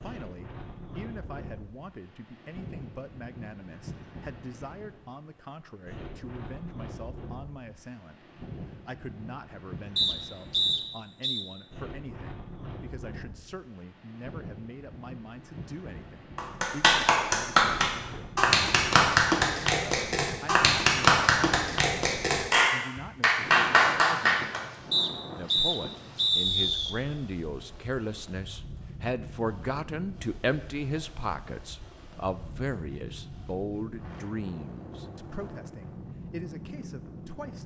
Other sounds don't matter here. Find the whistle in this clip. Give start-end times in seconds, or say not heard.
9.9-11.4, 24.9-26.9.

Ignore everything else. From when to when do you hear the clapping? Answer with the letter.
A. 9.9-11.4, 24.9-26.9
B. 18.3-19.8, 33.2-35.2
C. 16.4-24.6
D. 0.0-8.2
C.